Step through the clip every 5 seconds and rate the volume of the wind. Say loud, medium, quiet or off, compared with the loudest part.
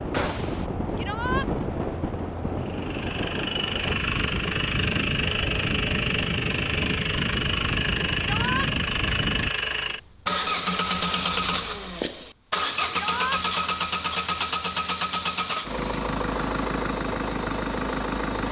loud, loud, off, off.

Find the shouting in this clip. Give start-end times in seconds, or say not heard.
0.9-1.5, 8.2-8.7, 12.9-13.4.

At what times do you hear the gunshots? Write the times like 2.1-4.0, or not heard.
0.1-0.7.